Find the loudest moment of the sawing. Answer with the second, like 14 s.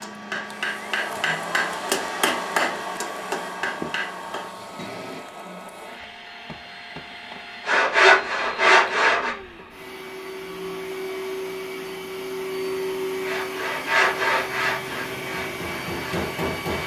8 s.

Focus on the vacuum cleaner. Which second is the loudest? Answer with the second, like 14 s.
13 s.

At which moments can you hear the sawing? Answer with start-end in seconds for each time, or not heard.
7.7-9.3, 13.2-16.8.